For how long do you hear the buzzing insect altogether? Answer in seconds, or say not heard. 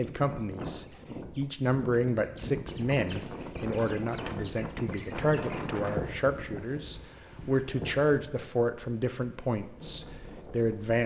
not heard.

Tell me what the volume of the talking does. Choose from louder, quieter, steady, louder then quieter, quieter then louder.
steady.